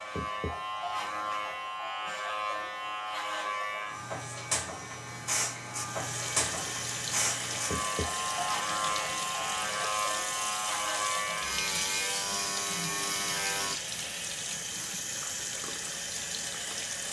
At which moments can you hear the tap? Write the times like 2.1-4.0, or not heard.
5.8-17.0.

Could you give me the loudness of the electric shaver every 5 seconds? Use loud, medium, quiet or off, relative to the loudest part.
loud, loud, loud, off.